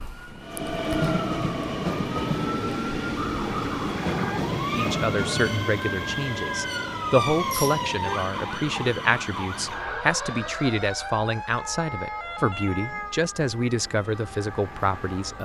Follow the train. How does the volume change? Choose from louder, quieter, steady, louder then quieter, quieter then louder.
quieter.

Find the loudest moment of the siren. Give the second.
8 s.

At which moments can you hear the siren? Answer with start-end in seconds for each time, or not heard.
0.0-15.4.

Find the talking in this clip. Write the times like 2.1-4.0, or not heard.
4.8-15.4.